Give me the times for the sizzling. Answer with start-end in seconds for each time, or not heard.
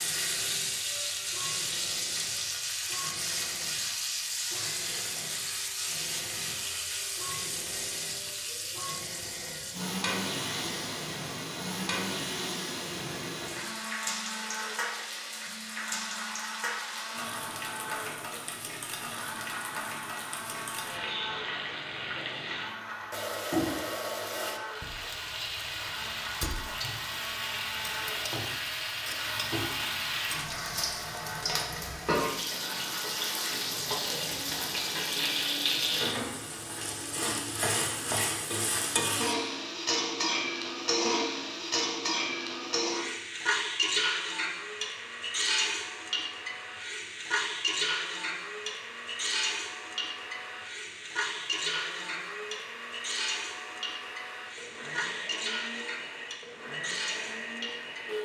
0.0-58.2.